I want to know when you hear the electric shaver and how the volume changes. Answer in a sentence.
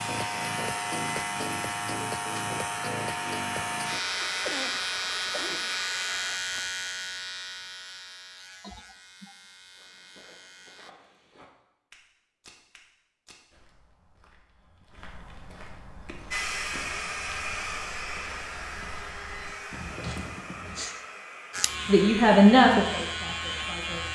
The electric shaver can be heard from 0.0 to 10.9 s, getting quieter; and briefly from 21.5 to 24.1 s.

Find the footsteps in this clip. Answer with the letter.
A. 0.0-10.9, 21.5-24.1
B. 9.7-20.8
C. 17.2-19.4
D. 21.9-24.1
B.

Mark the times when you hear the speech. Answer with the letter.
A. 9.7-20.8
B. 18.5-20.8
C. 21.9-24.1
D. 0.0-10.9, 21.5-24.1
C.